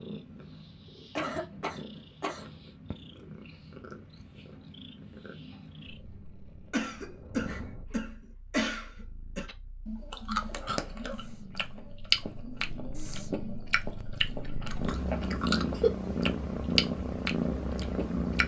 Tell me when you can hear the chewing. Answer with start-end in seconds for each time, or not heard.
9.4-18.4.